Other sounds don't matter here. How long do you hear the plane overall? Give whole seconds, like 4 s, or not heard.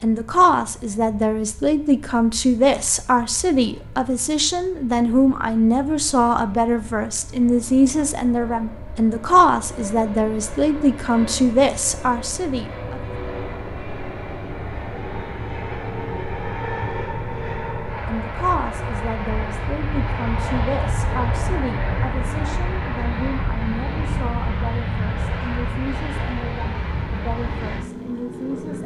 29 s.